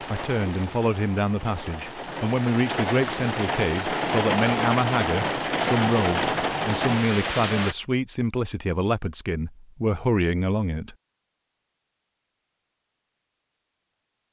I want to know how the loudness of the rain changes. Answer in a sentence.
The loudness of the rain goes up.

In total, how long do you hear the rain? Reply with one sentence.
You can hear the rain for 8 seconds altogether.